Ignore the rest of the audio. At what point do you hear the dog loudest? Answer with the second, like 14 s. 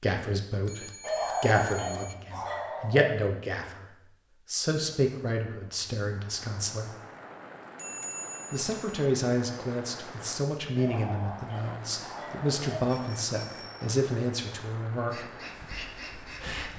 1 s.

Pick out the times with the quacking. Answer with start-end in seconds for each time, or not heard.
15.1-16.7.